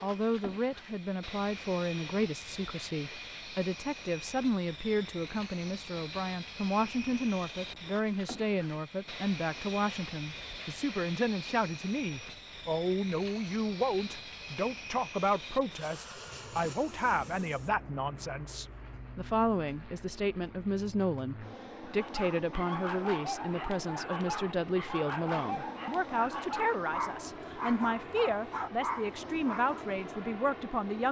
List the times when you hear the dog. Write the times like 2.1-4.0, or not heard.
21.8-29.9.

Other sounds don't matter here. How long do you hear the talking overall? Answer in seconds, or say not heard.
31 s.